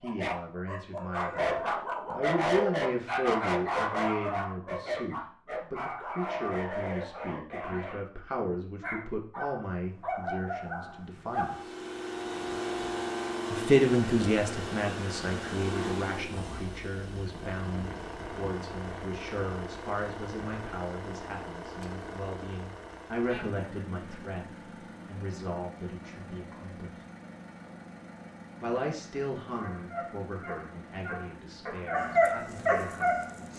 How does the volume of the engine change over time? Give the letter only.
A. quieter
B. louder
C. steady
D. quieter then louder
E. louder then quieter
A.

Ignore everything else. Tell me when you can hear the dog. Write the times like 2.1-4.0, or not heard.
0.0-8.0, 8.8-11.7, 29.6-33.5.